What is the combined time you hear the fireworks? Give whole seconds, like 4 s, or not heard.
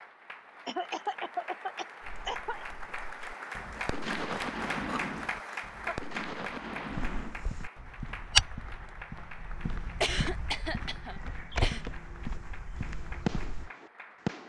7 s.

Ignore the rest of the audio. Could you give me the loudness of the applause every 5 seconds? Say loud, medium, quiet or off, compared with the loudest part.
loud, loud, medium.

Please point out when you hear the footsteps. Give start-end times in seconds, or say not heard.
6.9-13.7.